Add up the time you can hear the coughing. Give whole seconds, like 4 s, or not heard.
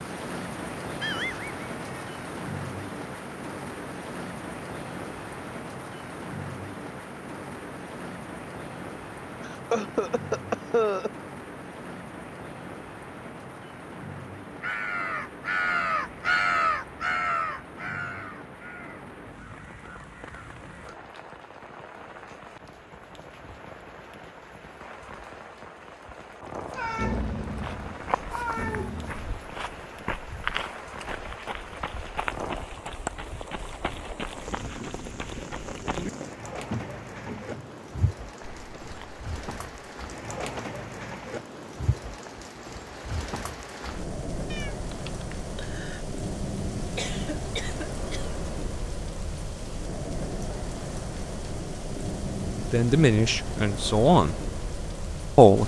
3 s.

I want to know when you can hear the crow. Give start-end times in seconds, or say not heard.
14.6-20.9.